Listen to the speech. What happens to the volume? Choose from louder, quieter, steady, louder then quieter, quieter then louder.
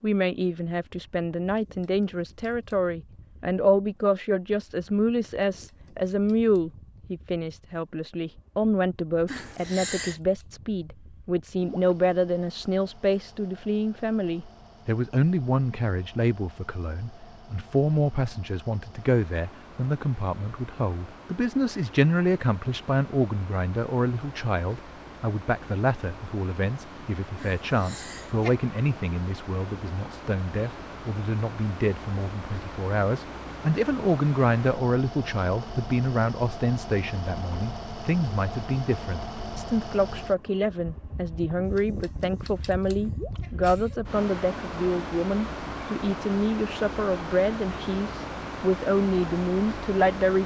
steady.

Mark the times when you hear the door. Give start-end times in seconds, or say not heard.
not heard.